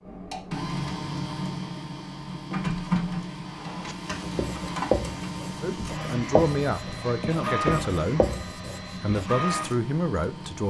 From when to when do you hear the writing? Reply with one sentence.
The writing can be heard from 3.5 to 9.3 s.